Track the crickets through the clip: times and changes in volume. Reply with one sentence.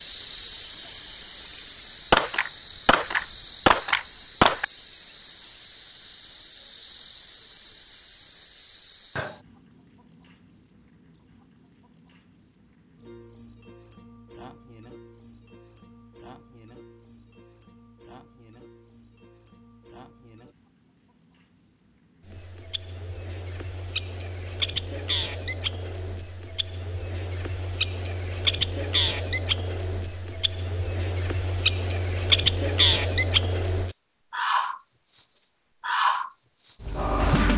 The crickets can be heard from 0.0 to 37.5 s, getting quieter then louder.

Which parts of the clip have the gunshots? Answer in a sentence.
You can hear the gunshots from 2.1 to 4.7 s.